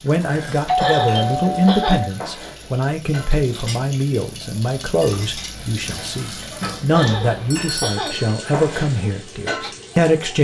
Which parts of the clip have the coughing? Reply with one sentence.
You can hear the coughing from 0.8 to 2.0 s and from 6.9 to 8.2 s.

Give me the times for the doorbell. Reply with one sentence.
You can hear the doorbell from 0.7 to 2.0 s and from 7.5 to 8.5 s.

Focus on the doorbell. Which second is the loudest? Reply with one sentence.
The volume of the doorbell peaks at 1 second.